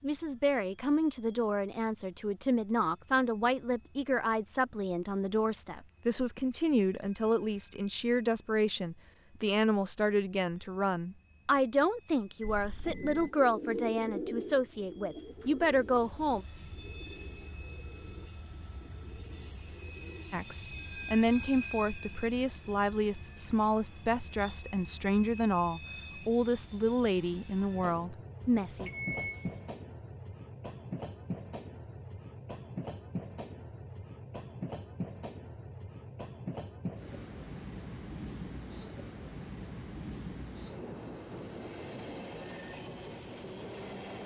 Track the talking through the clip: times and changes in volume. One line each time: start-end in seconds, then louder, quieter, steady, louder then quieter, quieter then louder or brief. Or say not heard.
0.0-16.4 steady
20.3-28.9 steady.